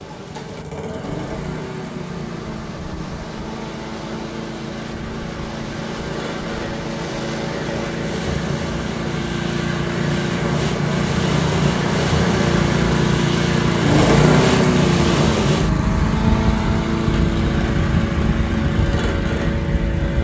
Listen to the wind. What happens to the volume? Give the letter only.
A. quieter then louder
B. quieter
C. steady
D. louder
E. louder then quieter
D.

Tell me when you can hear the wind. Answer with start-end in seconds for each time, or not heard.
0.0-20.1.